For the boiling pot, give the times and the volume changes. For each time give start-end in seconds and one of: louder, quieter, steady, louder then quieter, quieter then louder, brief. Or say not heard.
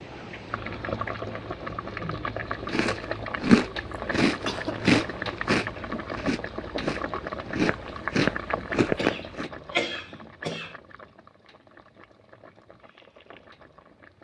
0.0-14.2 quieter.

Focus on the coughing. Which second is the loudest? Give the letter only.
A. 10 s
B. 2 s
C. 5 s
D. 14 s
A.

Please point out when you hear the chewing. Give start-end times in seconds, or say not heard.
2.6-9.5.